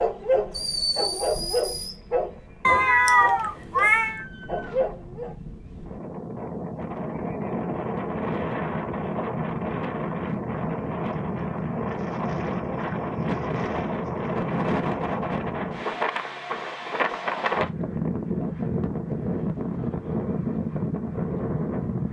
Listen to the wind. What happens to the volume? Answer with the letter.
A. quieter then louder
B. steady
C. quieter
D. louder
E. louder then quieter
D.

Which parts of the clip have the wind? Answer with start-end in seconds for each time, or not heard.
0.0-22.0.